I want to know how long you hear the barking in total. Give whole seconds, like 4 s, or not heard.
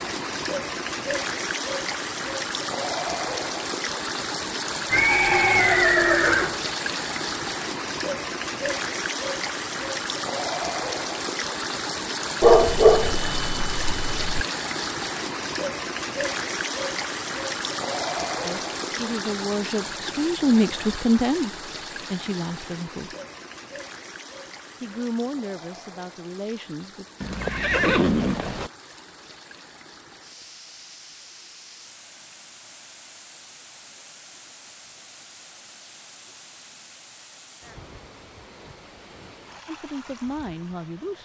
2 s.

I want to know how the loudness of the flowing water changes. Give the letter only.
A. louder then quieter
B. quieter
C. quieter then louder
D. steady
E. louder
B.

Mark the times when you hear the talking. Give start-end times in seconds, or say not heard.
18.4-23.1, 24.8-27.1, 39.6-41.2.